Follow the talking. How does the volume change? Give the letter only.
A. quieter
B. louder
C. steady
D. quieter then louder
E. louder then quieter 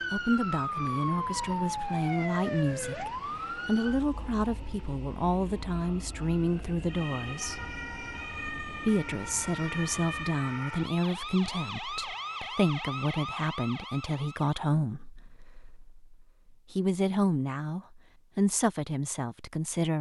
C.